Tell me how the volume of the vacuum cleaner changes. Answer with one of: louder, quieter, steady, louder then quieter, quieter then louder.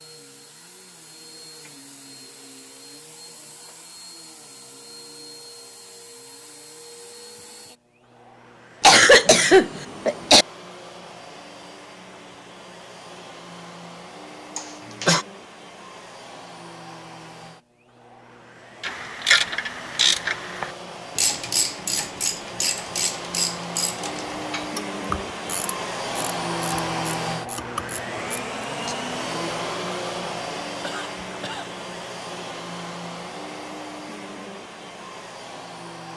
louder.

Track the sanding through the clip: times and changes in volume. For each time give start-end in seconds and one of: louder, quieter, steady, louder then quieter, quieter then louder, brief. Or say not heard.
not heard.